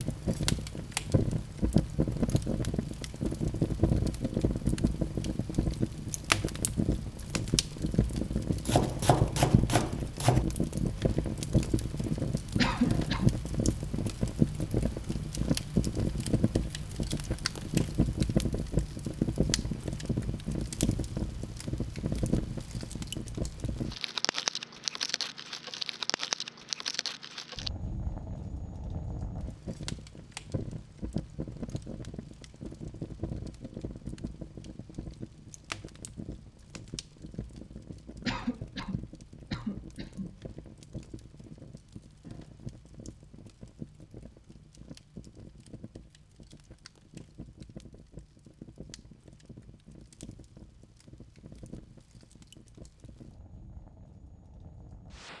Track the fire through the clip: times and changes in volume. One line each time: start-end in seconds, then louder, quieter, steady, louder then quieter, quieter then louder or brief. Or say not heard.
0.0-55.3 quieter.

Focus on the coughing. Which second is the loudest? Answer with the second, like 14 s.
13 s.